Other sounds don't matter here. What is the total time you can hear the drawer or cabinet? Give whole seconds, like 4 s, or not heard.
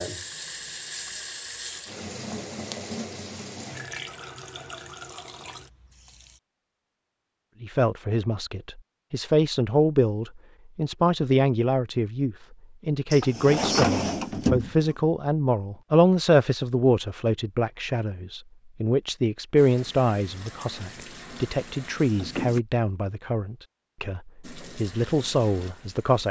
2 s.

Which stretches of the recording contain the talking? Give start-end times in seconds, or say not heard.
7.6-26.2.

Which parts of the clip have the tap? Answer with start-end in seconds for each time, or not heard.
0.0-6.4, 19.6-22.6, 24.4-26.2.